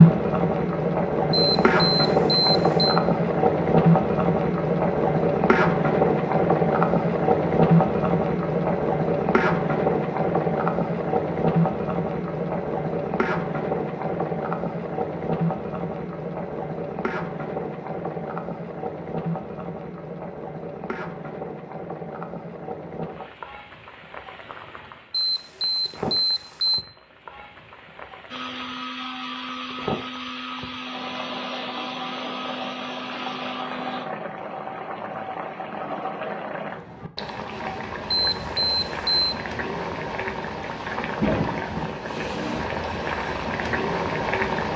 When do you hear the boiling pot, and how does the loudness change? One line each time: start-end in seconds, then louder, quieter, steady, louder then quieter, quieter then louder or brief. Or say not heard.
0.0-44.7 quieter then louder.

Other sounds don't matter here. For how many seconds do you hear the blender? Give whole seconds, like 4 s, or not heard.
6 s.